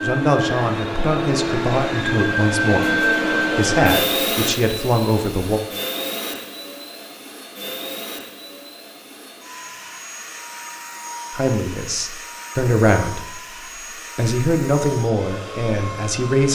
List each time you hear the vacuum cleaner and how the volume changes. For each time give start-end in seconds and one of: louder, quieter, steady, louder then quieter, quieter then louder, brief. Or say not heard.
0.0-16.5 quieter.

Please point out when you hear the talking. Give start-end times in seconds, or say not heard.
0.0-5.6, 11.3-16.5.